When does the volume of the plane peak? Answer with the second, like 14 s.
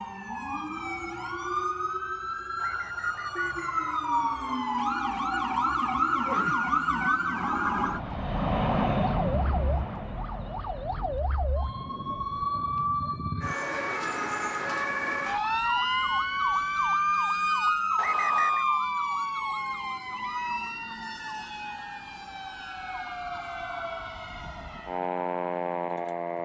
9 s.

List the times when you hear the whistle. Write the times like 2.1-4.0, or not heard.
2.5-4.6, 17.9-18.6.